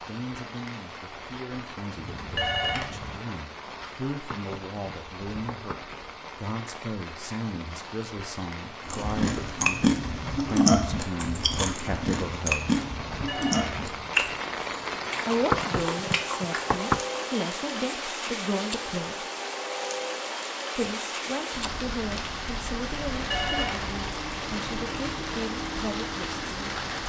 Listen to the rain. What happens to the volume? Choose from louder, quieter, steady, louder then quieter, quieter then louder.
louder.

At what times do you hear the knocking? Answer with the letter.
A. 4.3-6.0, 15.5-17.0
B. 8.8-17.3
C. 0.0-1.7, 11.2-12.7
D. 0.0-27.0
A.